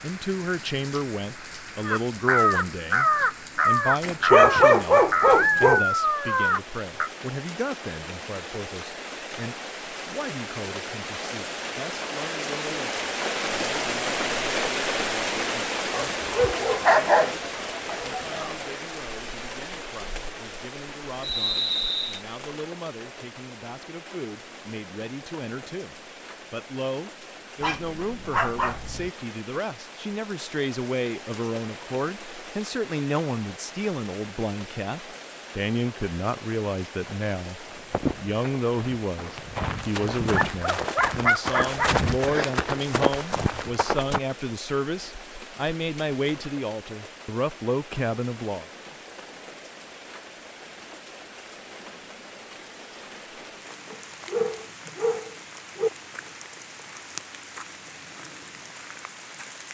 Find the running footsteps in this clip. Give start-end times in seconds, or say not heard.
37.6-44.2.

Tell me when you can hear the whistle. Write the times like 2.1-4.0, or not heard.
21.2-22.2.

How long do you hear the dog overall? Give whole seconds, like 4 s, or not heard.
10 s.